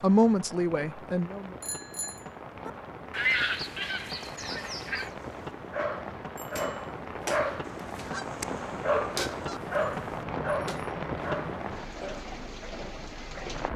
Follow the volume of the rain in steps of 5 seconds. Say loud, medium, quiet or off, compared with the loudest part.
medium, loud, loud.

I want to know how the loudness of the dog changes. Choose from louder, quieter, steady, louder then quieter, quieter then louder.
steady.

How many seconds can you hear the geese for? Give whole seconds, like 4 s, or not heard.
4 s.